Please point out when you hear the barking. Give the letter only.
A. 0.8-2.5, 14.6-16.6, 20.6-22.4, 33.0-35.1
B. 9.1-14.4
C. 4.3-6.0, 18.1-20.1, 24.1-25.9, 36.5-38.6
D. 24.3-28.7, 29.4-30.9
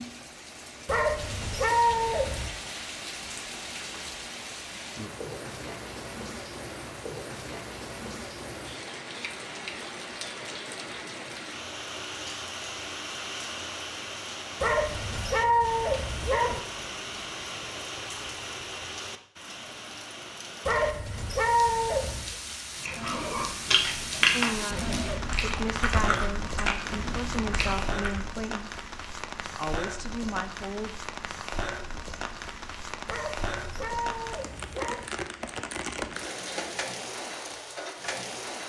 A.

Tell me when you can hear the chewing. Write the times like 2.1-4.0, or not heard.
22.8-28.2.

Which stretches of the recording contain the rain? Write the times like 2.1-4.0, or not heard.
0.0-38.6.